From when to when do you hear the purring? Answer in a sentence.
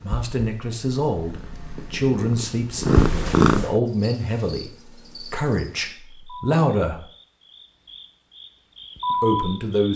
The purring can be heard from 0.0 to 3.8 s.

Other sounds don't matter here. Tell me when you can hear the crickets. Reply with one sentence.
The crickets can be heard from 3.9 to 9.9 s.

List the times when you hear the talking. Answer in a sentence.
You can hear the talking from 0.0 to 7.0 s and from 9.1 to 9.9 s.